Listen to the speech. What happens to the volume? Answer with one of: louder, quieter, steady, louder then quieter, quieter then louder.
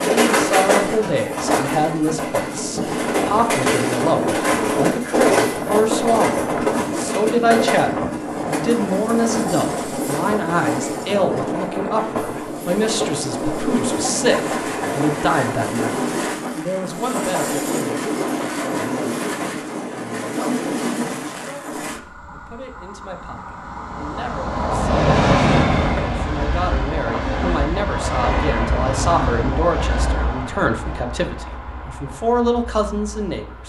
quieter then louder.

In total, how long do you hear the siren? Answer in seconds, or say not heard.
not heard.